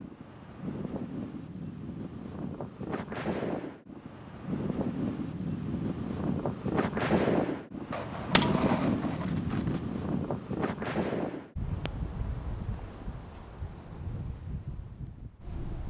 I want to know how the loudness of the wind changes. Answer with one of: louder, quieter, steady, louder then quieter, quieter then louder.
louder then quieter.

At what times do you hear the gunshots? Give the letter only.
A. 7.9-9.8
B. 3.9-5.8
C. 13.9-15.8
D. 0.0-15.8
A.